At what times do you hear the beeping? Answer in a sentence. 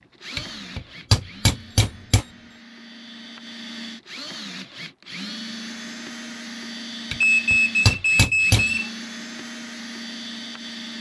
The beeping can be heard from 1.7 to 2.6 s and from 7.2 to 8.9 s.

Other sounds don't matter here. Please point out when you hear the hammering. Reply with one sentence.
The hammering can be heard from 0.3 to 2.2 s and from 7.1 to 8.7 s.